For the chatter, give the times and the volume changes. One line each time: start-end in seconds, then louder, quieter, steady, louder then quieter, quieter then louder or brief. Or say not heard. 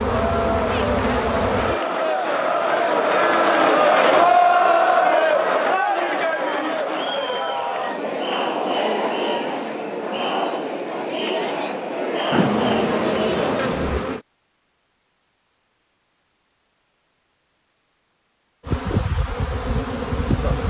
0.0-14.0 louder then quieter.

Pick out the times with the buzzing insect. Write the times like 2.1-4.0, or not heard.
0.0-1.8, 12.3-14.2, 18.6-20.6.